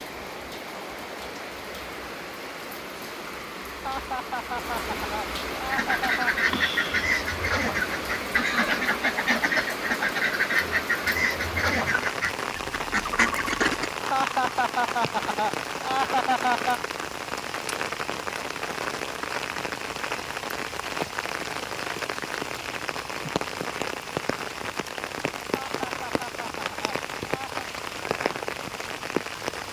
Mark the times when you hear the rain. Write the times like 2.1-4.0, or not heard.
0.0-29.6.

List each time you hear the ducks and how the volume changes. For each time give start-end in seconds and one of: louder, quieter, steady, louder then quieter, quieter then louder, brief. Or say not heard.
5.7-13.9 steady.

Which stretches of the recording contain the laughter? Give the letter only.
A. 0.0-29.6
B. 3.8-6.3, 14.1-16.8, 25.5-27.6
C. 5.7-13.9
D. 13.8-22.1
B.